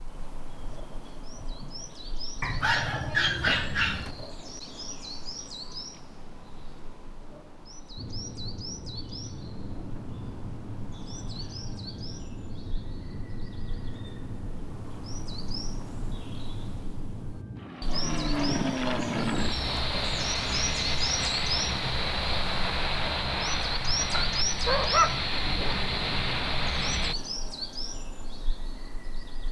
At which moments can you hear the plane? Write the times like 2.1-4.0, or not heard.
8.0-27.1.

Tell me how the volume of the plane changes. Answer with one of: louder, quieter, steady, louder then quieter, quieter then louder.
louder.